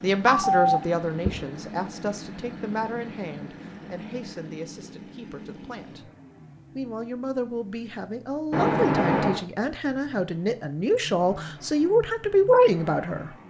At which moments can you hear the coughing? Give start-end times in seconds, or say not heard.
not heard.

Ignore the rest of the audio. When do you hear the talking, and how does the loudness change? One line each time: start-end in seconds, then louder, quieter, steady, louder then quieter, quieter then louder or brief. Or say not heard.
0.0-6.1 quieter
6.8-13.3 louder.